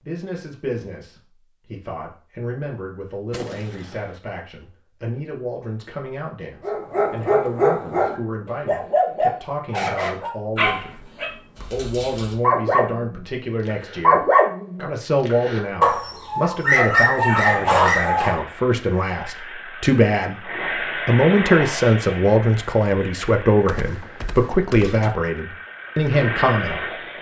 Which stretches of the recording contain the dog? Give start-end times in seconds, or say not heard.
6.7-18.4.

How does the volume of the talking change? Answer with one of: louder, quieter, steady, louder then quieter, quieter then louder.
louder.